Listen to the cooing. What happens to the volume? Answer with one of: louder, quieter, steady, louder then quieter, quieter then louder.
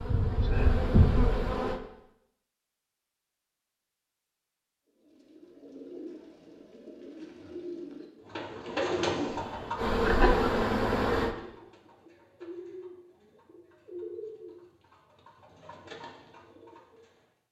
louder then quieter.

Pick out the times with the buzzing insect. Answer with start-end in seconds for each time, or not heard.
0.0-1.8, 9.3-11.3.